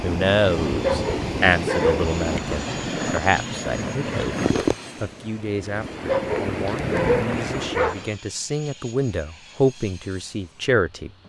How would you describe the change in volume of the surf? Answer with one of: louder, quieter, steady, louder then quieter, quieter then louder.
quieter then louder.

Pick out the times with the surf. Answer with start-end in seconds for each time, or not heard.
0.0-8.2.